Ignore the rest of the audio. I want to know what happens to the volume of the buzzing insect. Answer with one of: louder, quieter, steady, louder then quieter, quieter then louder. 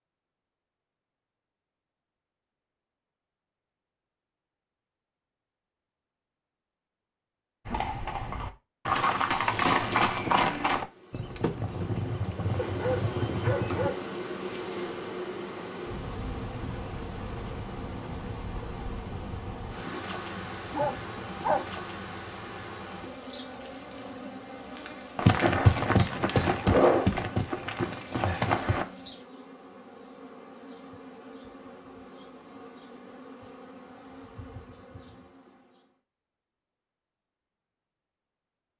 quieter.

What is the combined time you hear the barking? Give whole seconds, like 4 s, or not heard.
3 s.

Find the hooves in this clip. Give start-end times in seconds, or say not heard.
7.7-13.9, 25.1-28.9.